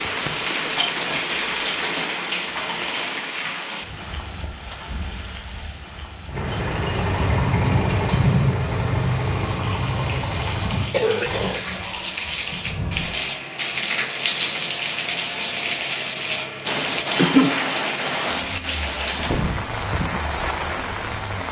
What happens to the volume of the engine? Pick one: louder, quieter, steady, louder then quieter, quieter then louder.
quieter.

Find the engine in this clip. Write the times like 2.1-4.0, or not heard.
6.2-21.4.